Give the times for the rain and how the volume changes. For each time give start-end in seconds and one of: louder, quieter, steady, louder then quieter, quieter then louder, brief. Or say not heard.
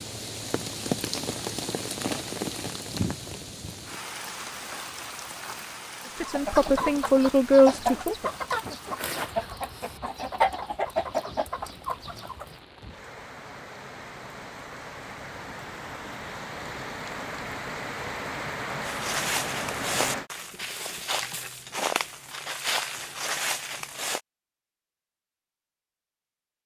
0.0-20.3 quieter then louder.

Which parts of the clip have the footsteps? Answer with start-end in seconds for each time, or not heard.
18.8-24.2.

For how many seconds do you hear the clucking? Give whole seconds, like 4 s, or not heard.
6 s.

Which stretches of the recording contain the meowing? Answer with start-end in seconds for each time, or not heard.
not heard.